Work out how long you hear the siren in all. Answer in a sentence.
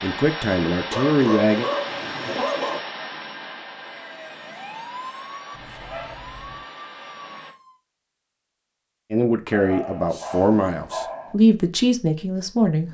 The siren can be heard for 4 seconds in total.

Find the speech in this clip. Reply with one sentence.
The speech can be heard from 0.0 to 1.6 s and from 9.1 to 12.8 s.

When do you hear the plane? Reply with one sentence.
You can hear the plane from 0.0 to 7.5 s.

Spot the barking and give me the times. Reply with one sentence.
You can hear the barking from 0.9 to 2.8 s, from 5.5 to 6.6 s and from 9.5 to 11.3 s.